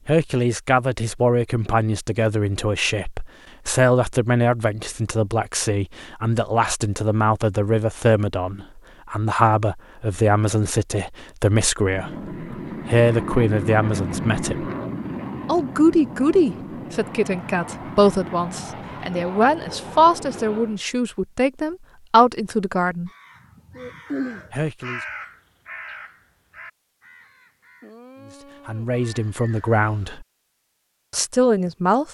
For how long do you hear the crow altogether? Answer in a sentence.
You can hear the crow for 7 seconds altogether.